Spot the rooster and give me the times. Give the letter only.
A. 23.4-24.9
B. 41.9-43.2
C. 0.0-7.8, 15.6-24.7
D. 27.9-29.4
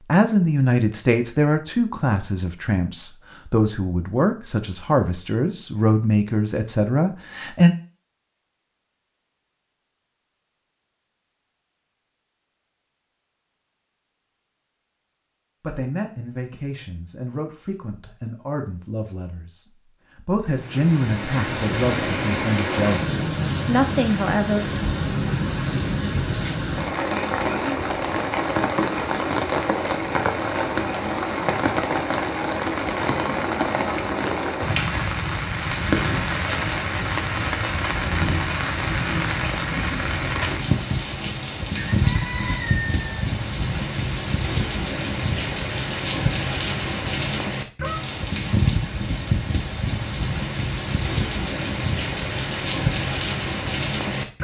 B.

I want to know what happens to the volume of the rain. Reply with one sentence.
The volume of the rain stays about the same.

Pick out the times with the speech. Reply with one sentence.
You can hear the speech from 0.0 to 7.8 s and from 15.6 to 24.7 s.